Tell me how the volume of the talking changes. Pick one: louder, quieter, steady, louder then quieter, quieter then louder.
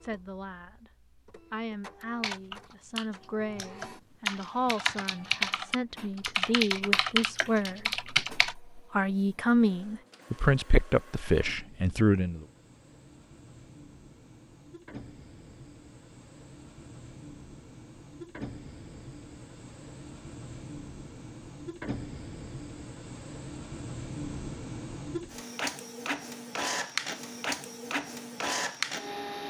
louder.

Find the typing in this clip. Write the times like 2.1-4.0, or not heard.
2.2-8.6.